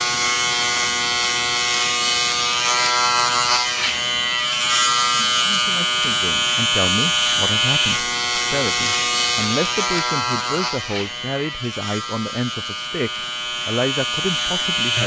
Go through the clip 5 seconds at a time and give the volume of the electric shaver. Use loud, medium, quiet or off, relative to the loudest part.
loud, loud, medium.